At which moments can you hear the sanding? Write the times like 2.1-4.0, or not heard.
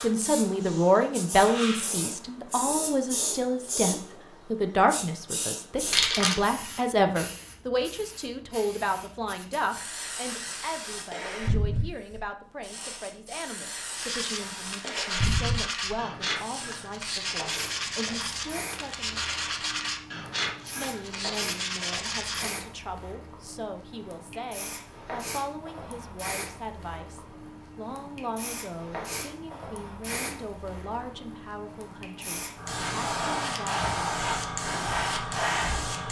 13.9-22.6.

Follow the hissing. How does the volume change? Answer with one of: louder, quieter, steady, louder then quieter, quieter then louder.
quieter then louder.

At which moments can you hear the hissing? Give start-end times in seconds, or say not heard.
0.0-36.0.